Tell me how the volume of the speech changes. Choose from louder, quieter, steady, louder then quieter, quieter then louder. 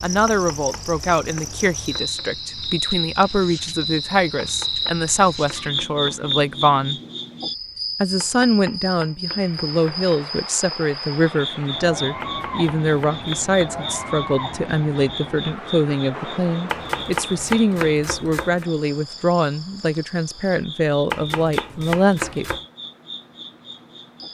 steady.